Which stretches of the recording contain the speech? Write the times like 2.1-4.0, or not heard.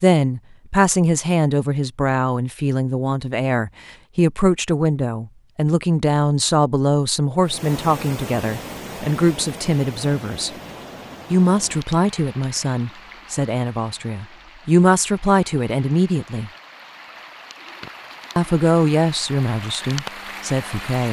0.0-10.5, 11.3-16.5, 18.4-21.0.